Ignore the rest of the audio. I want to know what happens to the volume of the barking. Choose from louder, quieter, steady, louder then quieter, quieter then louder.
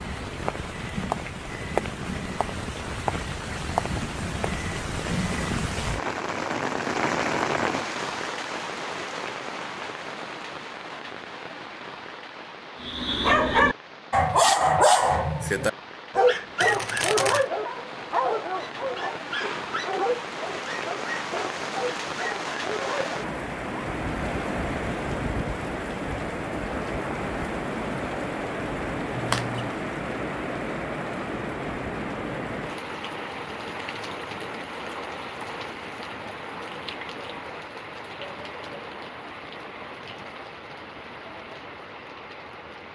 quieter.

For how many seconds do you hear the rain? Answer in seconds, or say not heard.
43 s.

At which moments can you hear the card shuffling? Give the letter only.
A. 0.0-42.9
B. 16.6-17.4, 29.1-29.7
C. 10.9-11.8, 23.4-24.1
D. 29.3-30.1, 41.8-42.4
B.